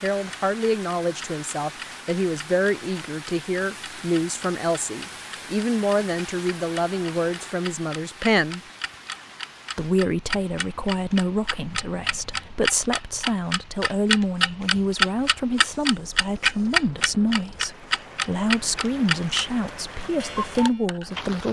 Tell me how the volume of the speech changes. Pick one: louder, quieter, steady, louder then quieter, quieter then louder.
steady.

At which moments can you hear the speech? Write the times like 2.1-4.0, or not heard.
0.0-8.6, 9.8-21.4.